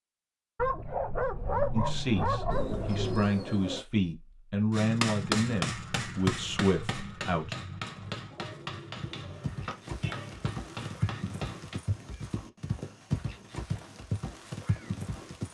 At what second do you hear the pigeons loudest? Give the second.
3 s.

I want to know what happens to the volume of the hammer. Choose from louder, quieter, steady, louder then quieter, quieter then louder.
quieter.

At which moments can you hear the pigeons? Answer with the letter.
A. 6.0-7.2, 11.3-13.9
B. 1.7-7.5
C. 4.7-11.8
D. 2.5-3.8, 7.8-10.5
D.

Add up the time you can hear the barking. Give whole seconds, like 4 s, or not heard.
3 s.